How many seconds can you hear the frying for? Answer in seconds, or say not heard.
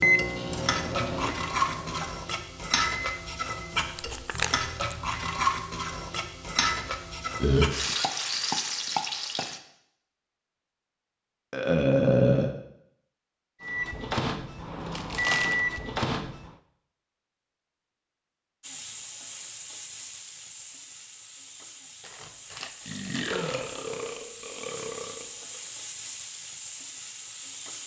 19 s.